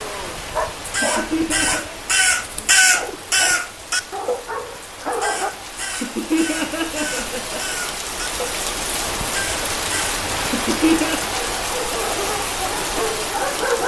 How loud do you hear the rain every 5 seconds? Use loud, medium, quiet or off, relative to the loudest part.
medium, loud, loud.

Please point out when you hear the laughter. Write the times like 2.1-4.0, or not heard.
0.8-1.9, 5.8-7.6, 10.4-11.2.